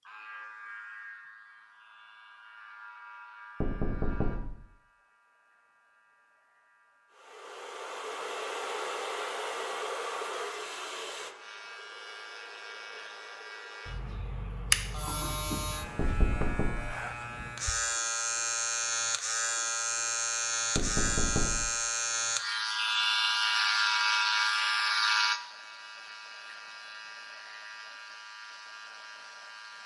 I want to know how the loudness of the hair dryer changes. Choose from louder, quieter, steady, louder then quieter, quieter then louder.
quieter.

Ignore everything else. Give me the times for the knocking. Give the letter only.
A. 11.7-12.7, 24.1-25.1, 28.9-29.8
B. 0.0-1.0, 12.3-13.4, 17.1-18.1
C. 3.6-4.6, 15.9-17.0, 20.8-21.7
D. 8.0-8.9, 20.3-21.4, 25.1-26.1
C.